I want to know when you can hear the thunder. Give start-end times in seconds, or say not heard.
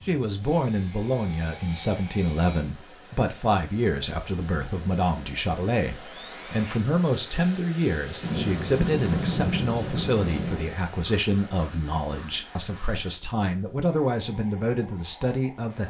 8.2-10.8.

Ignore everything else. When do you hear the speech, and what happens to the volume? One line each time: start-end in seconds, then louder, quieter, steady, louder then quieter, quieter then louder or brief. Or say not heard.
0.1-15.8 steady.